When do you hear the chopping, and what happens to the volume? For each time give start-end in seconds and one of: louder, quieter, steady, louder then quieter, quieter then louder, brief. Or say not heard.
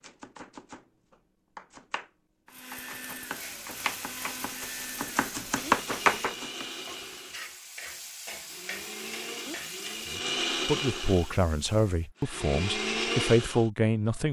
0.0-6.8 louder.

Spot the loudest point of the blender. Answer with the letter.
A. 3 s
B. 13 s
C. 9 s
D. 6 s
B.